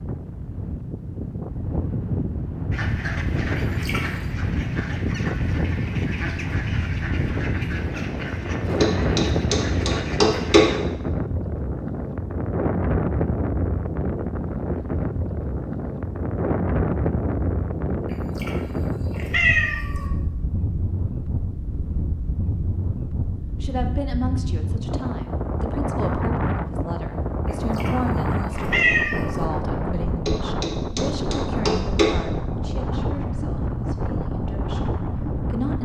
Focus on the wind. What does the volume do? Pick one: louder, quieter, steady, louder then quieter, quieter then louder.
steady.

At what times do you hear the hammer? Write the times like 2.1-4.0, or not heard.
8.8-10.7, 30.2-32.2.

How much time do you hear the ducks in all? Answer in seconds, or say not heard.
8 s.